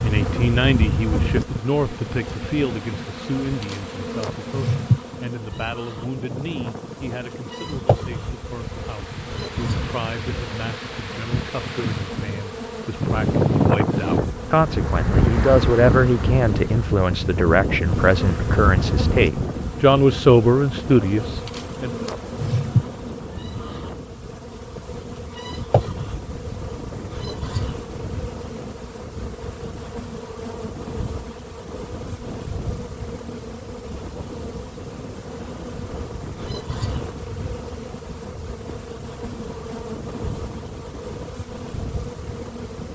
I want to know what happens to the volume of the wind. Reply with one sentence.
The volume of the wind goes up, then down.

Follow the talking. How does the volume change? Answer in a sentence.
The volume of the talking goes down, then up.